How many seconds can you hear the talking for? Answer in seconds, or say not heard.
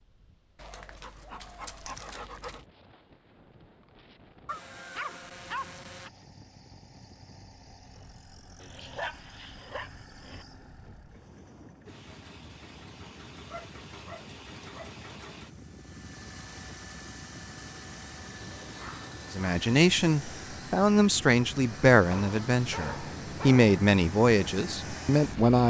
6 s.